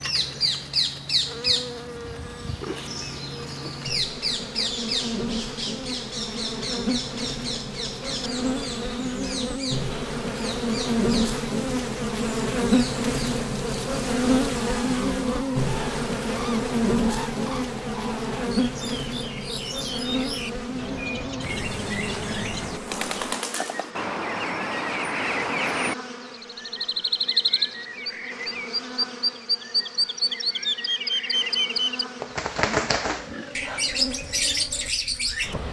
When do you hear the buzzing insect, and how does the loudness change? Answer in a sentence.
The buzzing insect can be heard from 0.0 to 35.6 s, getting louder then quieter.